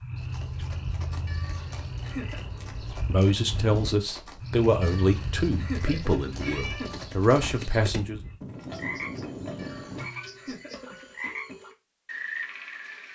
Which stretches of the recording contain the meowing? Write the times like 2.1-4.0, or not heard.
1.2-2.5, 4.8-7.0, 9.6-11.4.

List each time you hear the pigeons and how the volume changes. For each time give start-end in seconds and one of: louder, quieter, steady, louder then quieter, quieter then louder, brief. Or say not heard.
not heard.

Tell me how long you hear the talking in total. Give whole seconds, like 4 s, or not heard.
5 s.